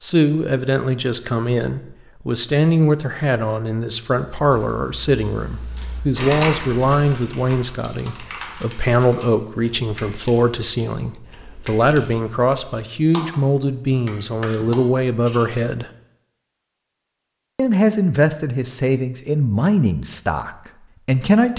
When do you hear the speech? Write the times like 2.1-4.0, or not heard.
0.0-15.9, 17.6-21.5.